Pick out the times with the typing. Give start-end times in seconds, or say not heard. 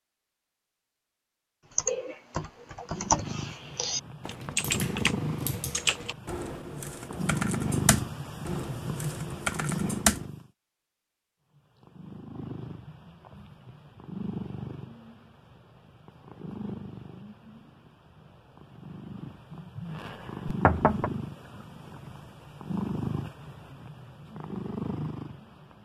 1.8-10.2.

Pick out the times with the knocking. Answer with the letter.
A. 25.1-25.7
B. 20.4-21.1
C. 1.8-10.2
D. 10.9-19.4
B.